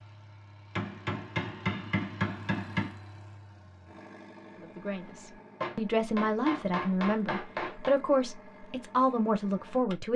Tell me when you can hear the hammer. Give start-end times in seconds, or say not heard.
0.8-3.0, 5.6-8.0.